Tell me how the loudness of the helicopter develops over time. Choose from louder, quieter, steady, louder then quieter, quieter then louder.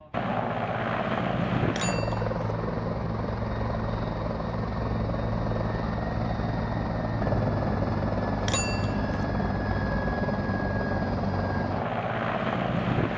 steady.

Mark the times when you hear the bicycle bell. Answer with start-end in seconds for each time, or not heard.
1.6-2.5, 8.4-9.2.